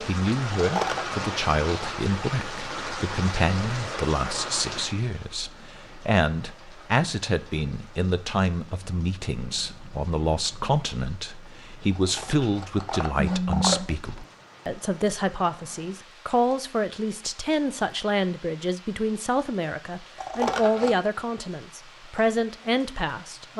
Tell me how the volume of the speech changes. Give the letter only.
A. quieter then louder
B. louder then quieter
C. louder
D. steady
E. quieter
D.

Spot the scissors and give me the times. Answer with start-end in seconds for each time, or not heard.
0.5-1.2, 11.9-13.9, 20.1-21.1.